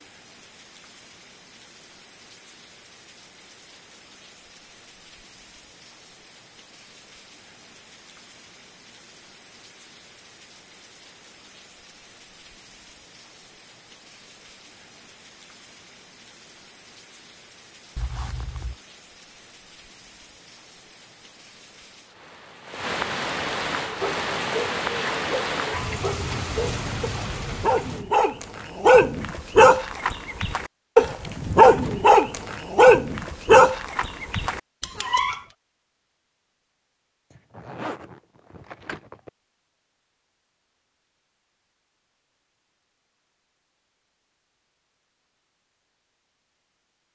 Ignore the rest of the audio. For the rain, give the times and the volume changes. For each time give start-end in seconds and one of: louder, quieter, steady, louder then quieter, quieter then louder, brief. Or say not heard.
0.0-28.1 louder.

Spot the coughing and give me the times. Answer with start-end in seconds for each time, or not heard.
not heard.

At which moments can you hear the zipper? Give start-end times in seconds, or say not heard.
17.9-18.8, 37.4-39.3.